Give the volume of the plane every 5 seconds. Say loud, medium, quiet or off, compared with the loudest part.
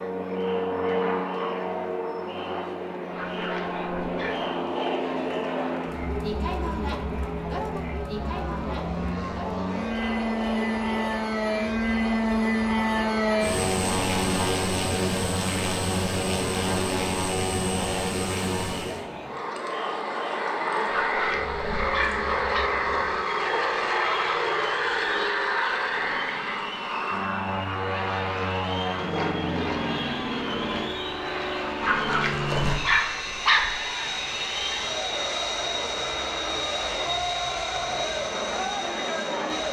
medium, medium, loud, loud, loud, loud, medium, medium.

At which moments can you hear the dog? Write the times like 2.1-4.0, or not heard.
3.1-4.5, 20.9-22.7, 31.8-33.9.